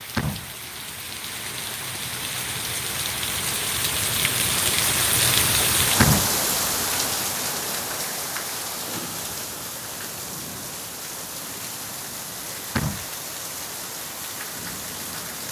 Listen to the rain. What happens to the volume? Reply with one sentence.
The loudness of the rain goes up, then down.